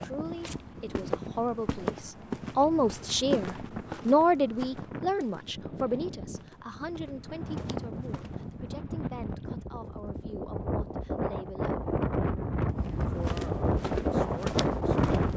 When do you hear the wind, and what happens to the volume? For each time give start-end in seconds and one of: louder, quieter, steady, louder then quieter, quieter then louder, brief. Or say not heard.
0.0-15.3 louder.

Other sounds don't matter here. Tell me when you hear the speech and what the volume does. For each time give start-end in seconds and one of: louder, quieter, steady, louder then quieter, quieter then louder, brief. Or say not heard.
0.0-11.9 louder then quieter
13.0-15.1 brief.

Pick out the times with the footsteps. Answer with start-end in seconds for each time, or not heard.
0.0-8.7, 12.7-15.3.